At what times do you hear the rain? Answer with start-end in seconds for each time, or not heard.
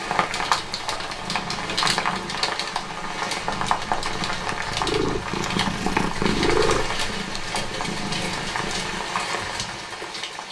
0.0-10.4.